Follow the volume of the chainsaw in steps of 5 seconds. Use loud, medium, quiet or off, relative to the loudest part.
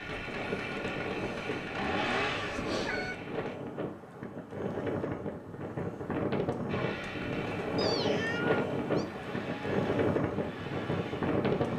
loud, medium, medium.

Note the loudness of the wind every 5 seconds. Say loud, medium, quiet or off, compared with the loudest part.
medium, loud, loud.